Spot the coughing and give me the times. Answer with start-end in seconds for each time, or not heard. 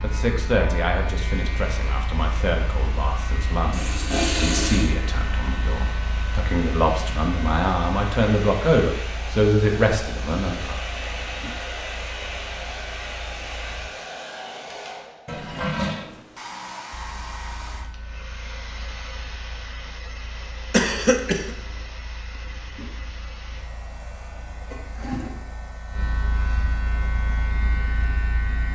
20.7-21.5.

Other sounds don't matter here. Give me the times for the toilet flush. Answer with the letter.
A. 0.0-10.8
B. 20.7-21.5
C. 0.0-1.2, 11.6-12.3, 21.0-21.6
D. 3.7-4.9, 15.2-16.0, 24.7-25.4
D.